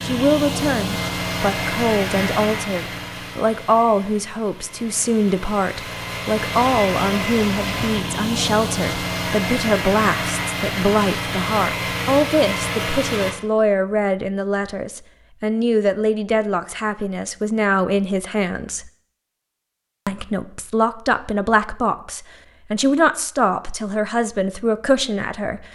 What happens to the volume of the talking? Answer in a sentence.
The volume of the talking stays about the same.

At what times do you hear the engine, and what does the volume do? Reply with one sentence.
You can hear the engine from 0.0 to 13.3 s, getting quieter then louder.